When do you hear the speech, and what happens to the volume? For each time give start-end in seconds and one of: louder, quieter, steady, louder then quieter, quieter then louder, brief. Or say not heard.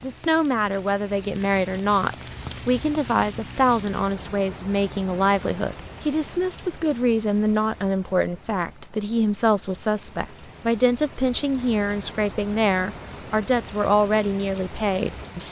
0.0-15.4 steady.